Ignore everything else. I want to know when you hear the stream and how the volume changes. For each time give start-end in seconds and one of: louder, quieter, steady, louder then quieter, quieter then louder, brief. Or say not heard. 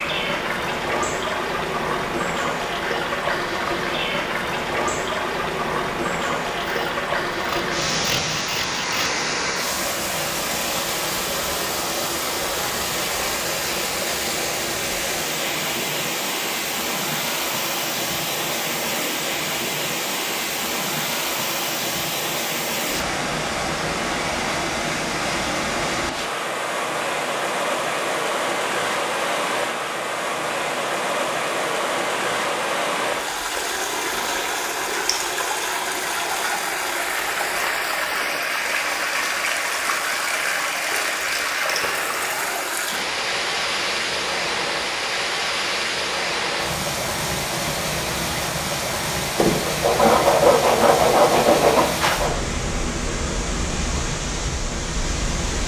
0.0-55.6 steady.